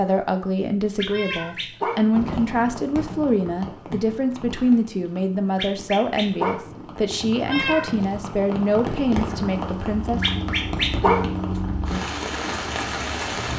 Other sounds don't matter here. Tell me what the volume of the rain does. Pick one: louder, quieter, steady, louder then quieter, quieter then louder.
quieter then louder.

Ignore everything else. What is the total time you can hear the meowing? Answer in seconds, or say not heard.
2 s.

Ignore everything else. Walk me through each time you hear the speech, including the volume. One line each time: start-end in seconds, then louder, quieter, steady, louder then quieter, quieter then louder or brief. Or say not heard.
0.0-10.2 steady.